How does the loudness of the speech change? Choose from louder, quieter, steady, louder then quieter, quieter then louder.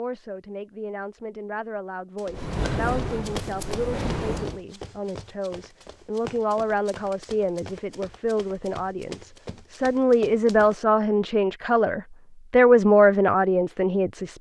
louder.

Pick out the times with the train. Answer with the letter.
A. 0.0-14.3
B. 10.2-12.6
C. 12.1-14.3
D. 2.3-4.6
D.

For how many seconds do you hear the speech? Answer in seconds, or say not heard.
14 s.